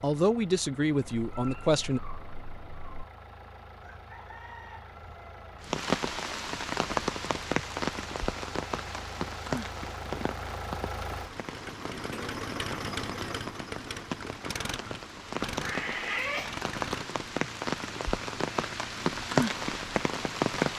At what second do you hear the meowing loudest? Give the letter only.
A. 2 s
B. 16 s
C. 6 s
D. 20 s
B.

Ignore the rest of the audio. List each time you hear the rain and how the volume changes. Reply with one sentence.
You can hear the rain from 5.6 to 20.7 s, getting quieter then louder.